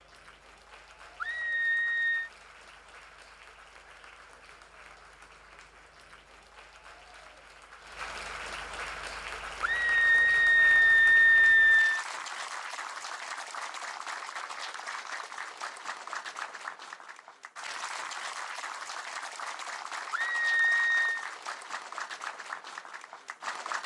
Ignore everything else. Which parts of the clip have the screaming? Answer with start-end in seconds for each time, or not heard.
1.2-2.3, 9.6-12.1, 20.1-21.2.